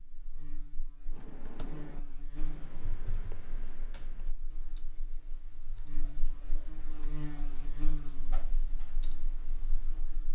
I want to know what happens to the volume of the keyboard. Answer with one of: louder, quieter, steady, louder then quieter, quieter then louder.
quieter then louder.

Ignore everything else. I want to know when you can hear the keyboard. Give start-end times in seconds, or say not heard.
1.1-10.1.